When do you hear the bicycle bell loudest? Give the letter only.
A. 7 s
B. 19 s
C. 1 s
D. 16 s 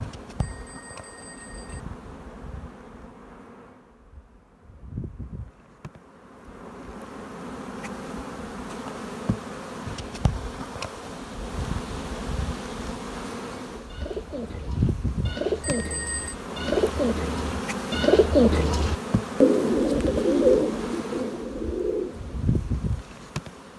D.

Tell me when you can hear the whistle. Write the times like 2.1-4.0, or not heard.
not heard.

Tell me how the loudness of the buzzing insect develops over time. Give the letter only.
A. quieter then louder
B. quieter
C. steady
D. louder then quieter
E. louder
E.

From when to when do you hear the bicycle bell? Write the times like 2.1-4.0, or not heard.
0.3-1.8, 15.6-16.4.